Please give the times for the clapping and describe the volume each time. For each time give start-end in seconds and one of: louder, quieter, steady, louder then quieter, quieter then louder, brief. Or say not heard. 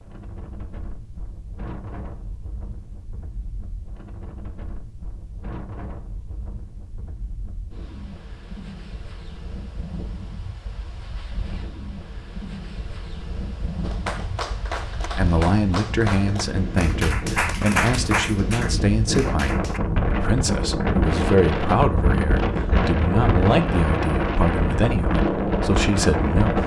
13.8-19.8 louder then quieter.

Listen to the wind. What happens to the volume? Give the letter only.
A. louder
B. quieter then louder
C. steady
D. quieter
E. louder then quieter
A.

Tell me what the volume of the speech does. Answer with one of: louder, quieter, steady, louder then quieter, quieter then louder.
steady.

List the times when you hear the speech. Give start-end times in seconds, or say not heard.
15.2-26.6.